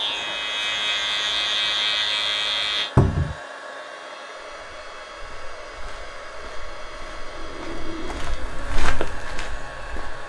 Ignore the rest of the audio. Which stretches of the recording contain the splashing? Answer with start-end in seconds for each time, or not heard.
not heard.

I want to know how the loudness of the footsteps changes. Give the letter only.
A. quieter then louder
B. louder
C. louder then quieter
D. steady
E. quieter
B.